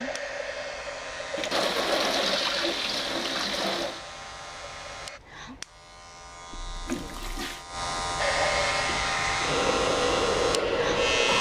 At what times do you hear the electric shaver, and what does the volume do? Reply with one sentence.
You can hear the electric shaver from 0.0 to 11.3 s, getting louder.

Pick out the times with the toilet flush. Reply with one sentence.
You can hear the toilet flush from 1.4 to 4.0 s and from 6.5 to 7.7 s.